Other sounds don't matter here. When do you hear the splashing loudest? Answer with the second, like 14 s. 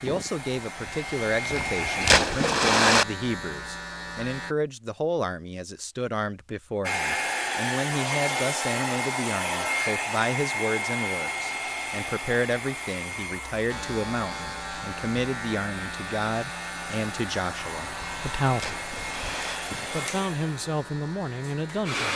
3 s.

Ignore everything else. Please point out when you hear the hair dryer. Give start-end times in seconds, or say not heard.
0.0-2.2, 6.8-22.1.